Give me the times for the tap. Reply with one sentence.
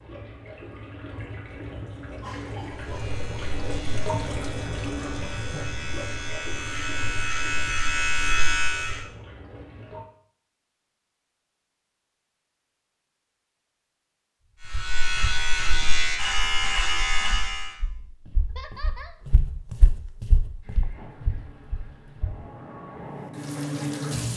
You can hear the tap from 0.0 to 10.1 s and from 20.6 to 24.3 s.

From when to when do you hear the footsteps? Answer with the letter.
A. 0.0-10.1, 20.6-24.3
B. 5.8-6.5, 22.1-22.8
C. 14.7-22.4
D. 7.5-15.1
C.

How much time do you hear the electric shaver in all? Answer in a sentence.
You can hear the electric shaver for 9 seconds altogether.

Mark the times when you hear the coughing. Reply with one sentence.
You can hear the coughing from 2.2 to 3.0 s and from 18.5 to 19.2 s.